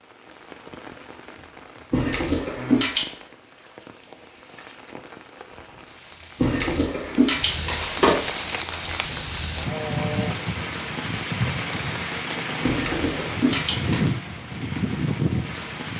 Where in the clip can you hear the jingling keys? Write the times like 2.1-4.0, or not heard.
1.9-3.1, 6.4-8.2, 12.6-14.1.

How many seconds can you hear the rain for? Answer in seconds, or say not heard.
16 s.